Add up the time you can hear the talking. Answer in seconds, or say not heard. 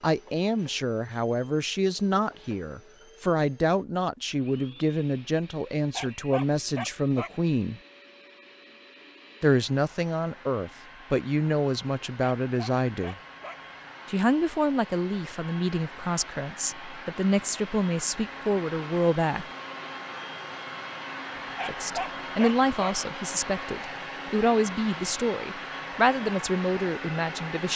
23 s.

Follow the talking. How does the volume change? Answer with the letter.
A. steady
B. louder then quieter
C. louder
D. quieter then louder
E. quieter
A.